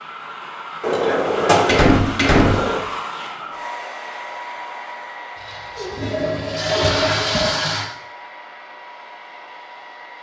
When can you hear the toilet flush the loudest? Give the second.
7 s.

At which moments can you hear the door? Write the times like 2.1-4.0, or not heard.
0.8-2.8, 6.8-7.5.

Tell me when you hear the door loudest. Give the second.
2 s.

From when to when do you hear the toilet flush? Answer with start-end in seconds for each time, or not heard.
1.8-2.9, 5.4-7.9.